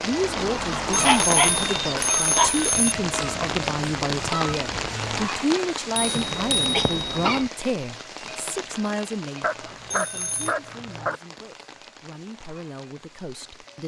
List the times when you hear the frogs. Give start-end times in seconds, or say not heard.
not heard.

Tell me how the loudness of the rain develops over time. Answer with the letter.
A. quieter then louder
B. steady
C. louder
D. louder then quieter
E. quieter
E.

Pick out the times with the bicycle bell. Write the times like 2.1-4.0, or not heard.
0.9-3.0, 6.0-7.5, 9.9-10.6.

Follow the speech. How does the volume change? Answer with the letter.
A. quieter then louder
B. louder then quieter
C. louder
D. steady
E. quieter
E.